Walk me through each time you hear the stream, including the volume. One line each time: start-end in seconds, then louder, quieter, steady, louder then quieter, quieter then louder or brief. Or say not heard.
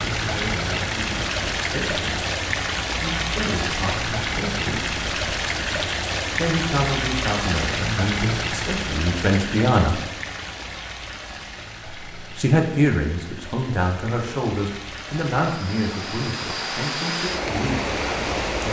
0.0-18.6 quieter then louder.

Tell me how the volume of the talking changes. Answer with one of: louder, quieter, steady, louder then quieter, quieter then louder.
louder then quieter.